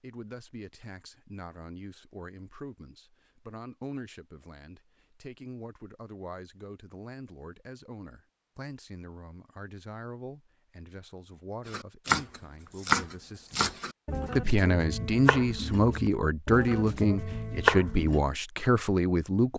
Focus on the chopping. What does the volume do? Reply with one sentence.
The loudness of the chopping goes down, then up.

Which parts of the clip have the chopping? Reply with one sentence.
You can hear the chopping from 11.7 to 18.2 s.